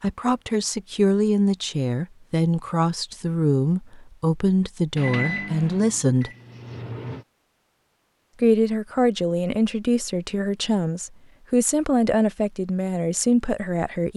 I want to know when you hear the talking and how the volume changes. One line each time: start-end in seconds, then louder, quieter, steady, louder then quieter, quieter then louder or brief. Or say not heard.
0.0-6.3 steady
8.4-14.1 steady.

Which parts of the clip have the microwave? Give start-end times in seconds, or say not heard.
5.0-7.2.